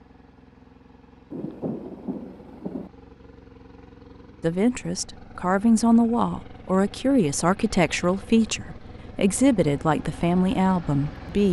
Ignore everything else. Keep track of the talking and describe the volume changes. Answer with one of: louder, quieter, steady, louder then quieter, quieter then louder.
steady.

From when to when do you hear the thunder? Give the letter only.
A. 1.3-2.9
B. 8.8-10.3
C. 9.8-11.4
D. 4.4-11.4
A.